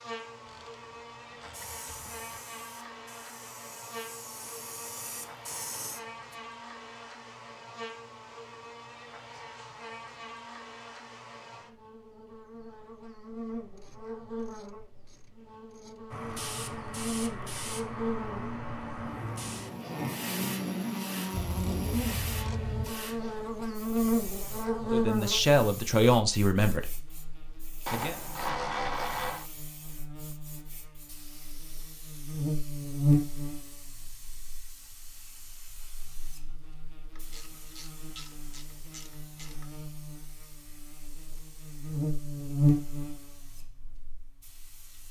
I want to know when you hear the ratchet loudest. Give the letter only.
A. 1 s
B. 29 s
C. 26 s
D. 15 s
B.